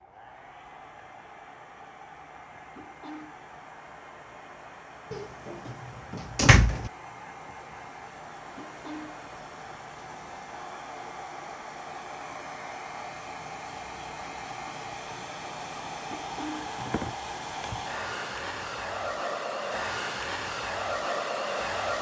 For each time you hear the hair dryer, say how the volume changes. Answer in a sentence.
You can hear the hair dryer from 0.0 to 21.9 s, getting louder.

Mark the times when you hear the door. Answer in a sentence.
You can hear the door from 5.1 to 6.9 s.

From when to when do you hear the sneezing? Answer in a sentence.
The sneezing can be heard from 2.8 to 3.4 s, from 8.6 to 9.2 s and from 16.1 to 16.8 s.